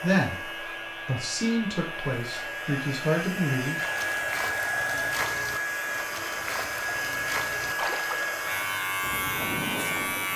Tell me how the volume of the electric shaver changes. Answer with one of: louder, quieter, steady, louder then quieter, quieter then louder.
louder.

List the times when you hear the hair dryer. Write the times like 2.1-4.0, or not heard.
0.0-9.0.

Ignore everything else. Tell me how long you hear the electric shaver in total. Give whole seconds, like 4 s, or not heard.
10 s.